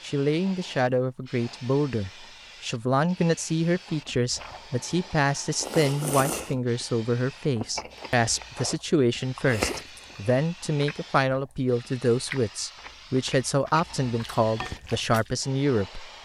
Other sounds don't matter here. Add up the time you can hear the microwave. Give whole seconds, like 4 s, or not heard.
not heard.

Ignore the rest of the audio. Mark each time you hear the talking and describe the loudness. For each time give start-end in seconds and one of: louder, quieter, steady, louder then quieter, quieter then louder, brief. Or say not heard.
0.0-16.1 steady.